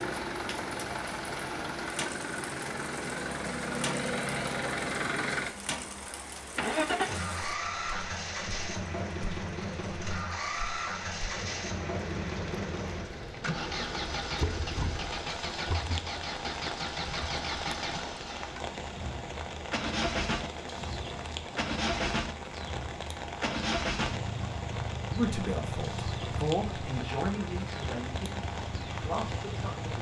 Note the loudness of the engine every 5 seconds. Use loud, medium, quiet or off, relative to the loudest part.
loud, loud, loud, loud, loud, medium.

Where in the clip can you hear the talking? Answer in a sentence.
You can hear the talking from 25.1 to 29.9 s.